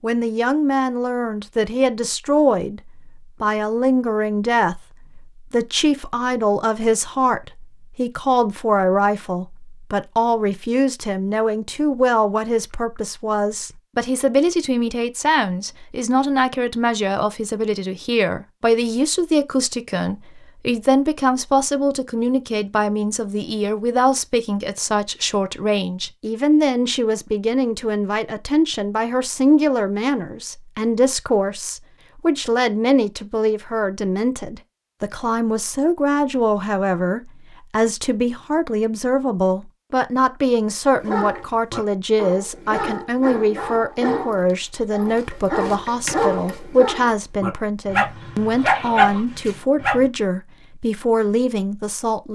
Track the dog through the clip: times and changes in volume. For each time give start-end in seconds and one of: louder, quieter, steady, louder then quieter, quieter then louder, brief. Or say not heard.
41.0-50.0 louder.